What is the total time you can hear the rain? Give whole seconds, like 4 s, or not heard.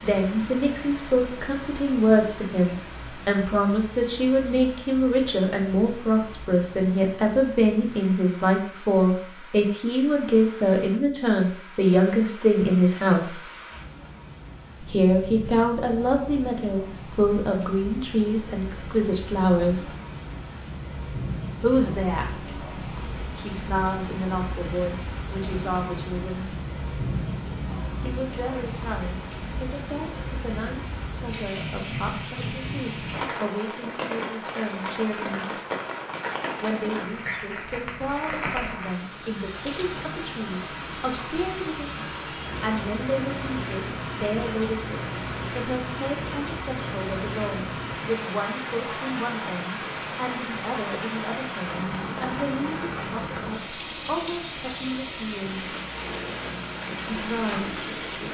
58 s.